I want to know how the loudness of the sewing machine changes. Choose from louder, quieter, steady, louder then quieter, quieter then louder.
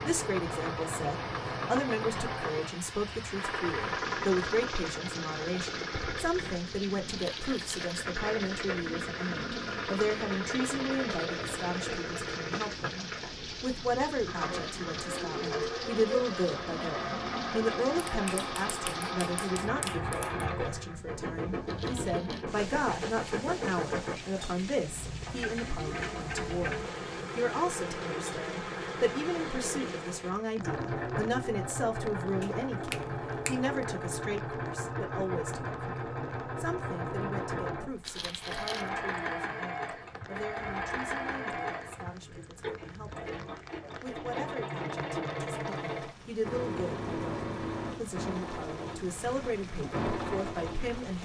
steady.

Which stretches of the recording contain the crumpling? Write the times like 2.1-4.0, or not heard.
7.0-8.0, 21.6-22.4, 38.0-38.9.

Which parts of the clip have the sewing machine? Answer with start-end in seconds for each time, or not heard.
0.0-51.2.